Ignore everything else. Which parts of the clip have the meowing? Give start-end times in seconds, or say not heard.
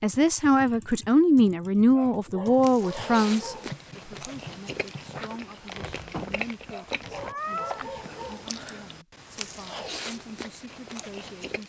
5.7-7.8.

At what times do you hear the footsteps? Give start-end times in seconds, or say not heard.
not heard.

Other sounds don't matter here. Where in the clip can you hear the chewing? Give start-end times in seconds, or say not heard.
2.6-11.6.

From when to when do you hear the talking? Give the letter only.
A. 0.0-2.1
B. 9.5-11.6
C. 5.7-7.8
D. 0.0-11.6
D.